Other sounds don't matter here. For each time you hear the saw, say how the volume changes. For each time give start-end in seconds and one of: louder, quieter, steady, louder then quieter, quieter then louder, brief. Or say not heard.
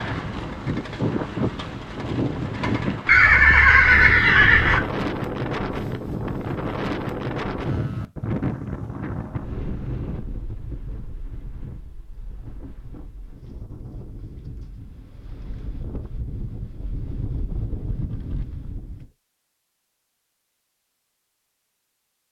not heard.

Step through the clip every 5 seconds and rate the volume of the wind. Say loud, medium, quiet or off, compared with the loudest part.
loud, loud, quiet, medium, off.